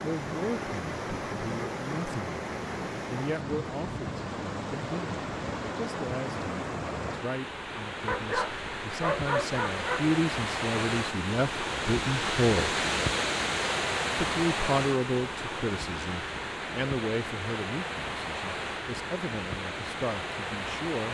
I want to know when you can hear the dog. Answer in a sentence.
You can hear the dog from 8.1 to 10.1 s.